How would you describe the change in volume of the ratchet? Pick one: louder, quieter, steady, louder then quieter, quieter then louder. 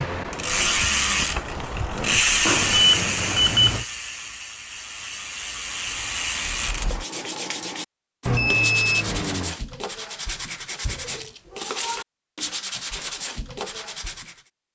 quieter then louder.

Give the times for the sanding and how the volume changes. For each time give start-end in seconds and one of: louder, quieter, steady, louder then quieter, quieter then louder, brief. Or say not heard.
6.7-14.4 steady.